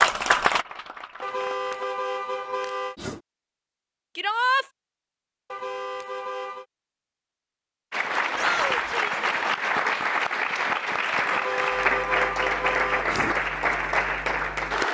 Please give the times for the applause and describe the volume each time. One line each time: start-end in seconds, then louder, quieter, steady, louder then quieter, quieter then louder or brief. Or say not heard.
0.0-1.9 brief
7.9-14.8 steady.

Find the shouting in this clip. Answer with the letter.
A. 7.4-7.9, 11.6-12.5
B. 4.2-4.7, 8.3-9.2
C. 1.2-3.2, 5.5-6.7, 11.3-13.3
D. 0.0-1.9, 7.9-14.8
B.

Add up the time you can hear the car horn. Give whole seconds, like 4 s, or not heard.
5 s.